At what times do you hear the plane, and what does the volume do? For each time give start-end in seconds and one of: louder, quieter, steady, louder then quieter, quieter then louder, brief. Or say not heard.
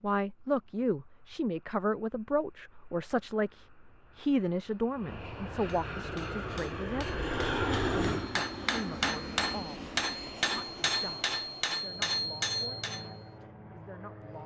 0.2-14.4 louder then quieter.